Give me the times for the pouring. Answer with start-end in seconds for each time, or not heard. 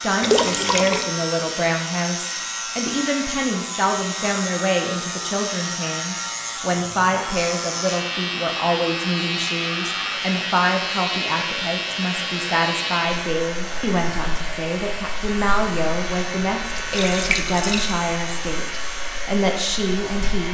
0.2-1.1, 15.3-17.9.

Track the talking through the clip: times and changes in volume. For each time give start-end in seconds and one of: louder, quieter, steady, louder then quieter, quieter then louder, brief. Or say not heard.
0.0-20.4 steady.